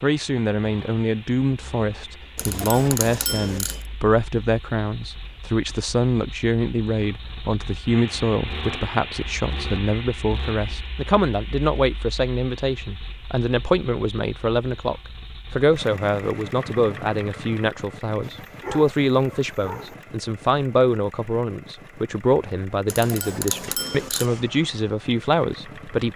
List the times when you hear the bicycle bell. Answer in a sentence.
You can hear the bicycle bell from 2.4 to 3.9 s and from 22.9 to 24.3 s.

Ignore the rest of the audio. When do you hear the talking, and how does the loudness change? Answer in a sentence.
The talking can be heard from 0.0 to 26.1 s, at a steady volume.